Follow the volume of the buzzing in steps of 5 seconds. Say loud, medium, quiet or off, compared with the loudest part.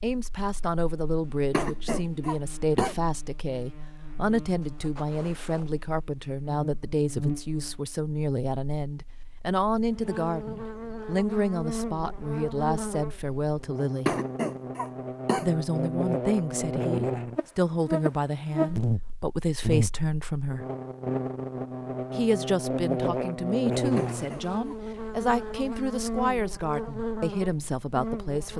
quiet, medium, medium, loud, loud, medium.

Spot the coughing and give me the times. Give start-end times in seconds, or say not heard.
1.5-3.0, 14.1-15.5, 23.9-24.8.